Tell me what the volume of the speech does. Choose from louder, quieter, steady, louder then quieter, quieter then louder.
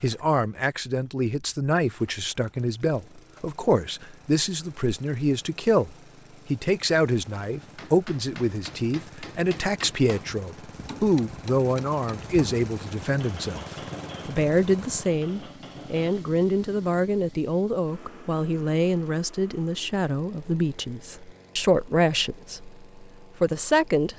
steady.